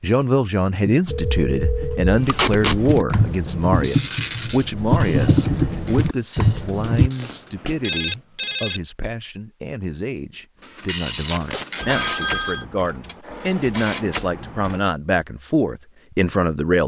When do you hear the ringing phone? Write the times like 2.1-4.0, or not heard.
1.1-2.5, 7.0-8.8, 11.8-12.7.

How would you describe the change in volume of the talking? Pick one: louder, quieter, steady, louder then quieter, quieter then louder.
quieter then louder.